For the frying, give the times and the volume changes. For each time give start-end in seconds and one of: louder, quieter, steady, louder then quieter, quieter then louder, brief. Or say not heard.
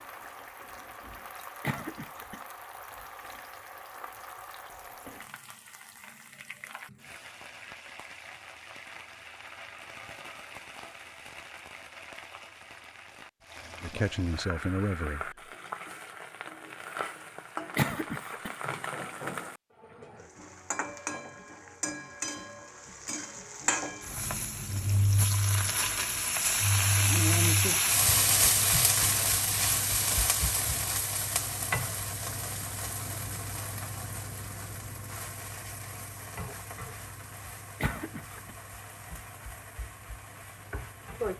0.0-41.3 louder then quieter.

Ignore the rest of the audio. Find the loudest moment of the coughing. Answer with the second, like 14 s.
18 s.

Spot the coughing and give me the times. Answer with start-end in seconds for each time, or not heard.
1.6-2.4, 17.8-18.6, 37.8-38.5.